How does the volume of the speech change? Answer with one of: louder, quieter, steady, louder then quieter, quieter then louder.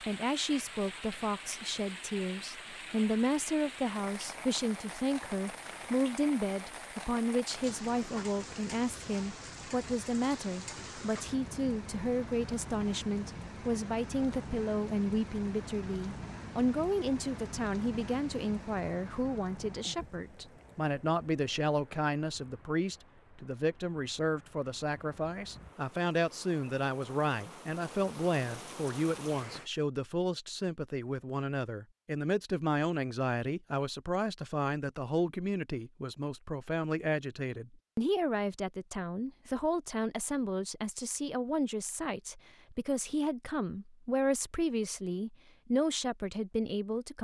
steady.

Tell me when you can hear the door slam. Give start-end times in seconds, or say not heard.
not heard.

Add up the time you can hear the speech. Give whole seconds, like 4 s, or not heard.
47 s.